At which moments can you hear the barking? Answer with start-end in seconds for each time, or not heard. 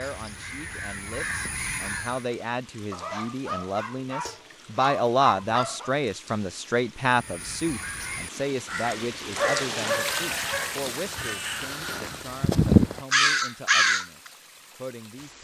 2.9-5.9, 9.3-10.8.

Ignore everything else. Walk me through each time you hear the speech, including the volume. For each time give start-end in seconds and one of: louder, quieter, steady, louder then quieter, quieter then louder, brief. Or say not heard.
0.0-15.3 louder then quieter.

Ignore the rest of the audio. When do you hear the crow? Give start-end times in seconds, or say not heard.
0.0-2.2, 7.0-14.3.